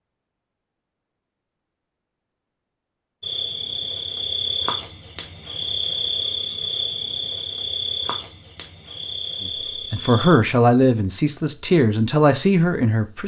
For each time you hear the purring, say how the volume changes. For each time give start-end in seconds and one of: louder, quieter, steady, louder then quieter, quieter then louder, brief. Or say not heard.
not heard.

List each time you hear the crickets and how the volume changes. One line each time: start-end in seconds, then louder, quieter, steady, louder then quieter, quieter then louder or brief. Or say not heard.
3.2-13.2 quieter.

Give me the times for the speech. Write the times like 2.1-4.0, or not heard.
9.4-13.2.